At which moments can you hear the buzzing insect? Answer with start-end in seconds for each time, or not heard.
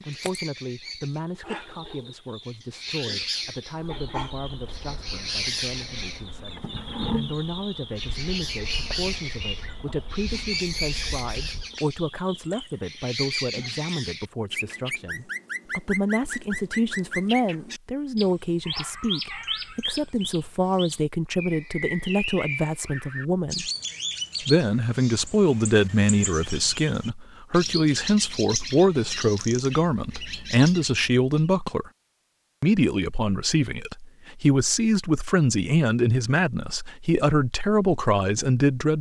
3.9-11.8.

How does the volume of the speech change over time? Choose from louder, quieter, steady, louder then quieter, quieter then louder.
louder.